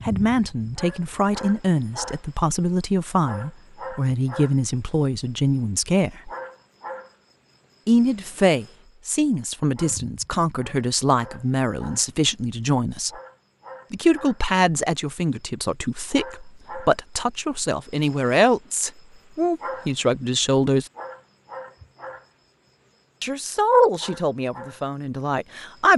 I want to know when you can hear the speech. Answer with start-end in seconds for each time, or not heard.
0.1-6.3, 7.8-13.1, 13.9-20.9, 23.2-25.9.